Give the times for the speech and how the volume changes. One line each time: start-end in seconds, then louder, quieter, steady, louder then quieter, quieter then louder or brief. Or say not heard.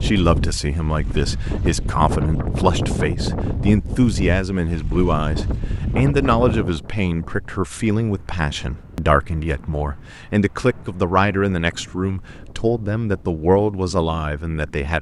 0.0-14.9 steady.